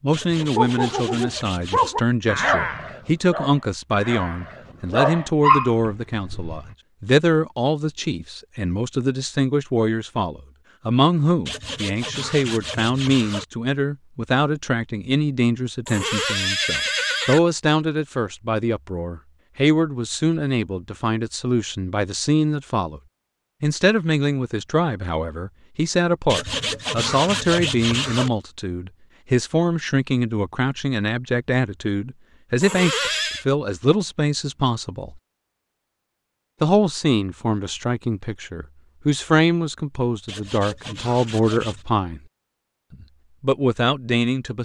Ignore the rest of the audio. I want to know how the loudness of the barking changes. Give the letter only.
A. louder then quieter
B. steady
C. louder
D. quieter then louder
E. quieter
D.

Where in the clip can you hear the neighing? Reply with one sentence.
The neighing can be heard from 15.8 to 17.4 s and from 32.6 to 33.5 s.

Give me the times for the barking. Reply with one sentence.
You can hear the barking from 0.4 to 6.8 s.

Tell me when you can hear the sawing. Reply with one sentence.
You can hear the sawing from 0.1 to 1.9 s, from 11.4 to 13.4 s, from 26.2 to 28.3 s and from 40.2 to 41.9 s.